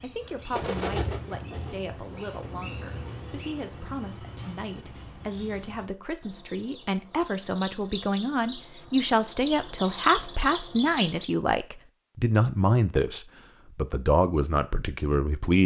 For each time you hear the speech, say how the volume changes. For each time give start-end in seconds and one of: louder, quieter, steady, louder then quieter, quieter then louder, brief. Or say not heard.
0.0-15.6 louder.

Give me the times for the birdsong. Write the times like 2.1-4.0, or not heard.
0.0-11.3.